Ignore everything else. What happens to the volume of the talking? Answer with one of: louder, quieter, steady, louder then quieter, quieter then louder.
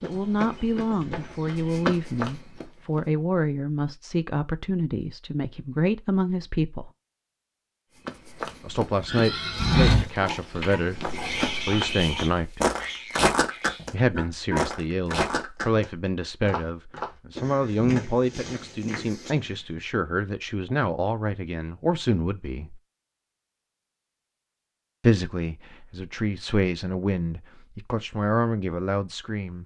steady.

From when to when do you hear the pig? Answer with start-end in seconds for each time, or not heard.
9.1-14.7.